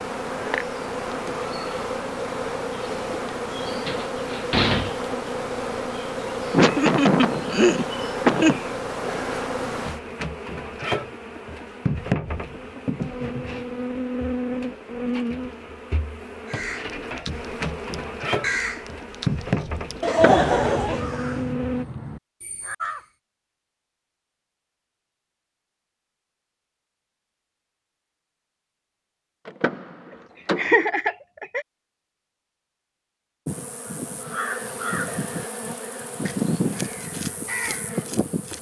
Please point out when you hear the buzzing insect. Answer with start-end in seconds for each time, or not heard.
0.0-21.9, 33.5-38.5.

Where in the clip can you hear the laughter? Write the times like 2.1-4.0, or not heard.
6.5-8.6, 20.0-21.4, 30.6-31.6.